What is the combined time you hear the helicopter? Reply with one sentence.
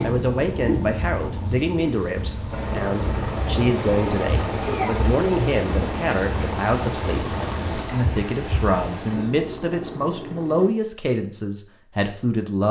You can hear the helicopter for 8 seconds altogether.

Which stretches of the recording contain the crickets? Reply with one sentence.
You can hear the crickets from 0.0 to 9.2 s.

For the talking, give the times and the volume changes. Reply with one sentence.
You can hear the talking from 0.0 to 12.6 s, at a steady volume.